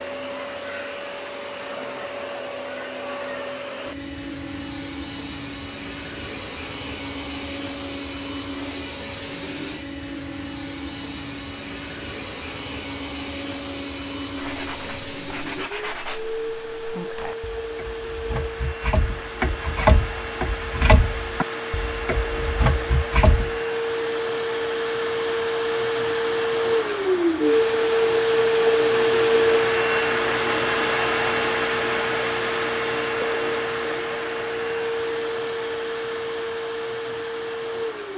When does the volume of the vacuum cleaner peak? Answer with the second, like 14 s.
29 s.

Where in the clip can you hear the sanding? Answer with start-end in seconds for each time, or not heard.
14.3-23.6.